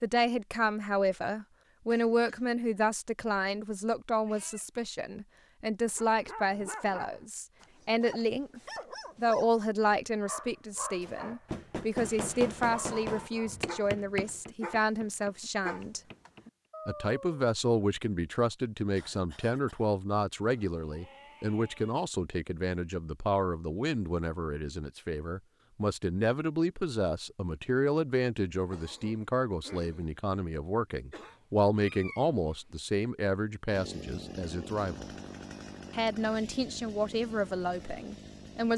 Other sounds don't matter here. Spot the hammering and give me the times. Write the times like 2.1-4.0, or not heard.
11.0-16.4.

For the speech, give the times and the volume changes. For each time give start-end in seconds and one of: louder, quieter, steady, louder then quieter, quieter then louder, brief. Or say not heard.
0.0-16.0 steady
16.9-35.1 steady
35.9-38.7 brief.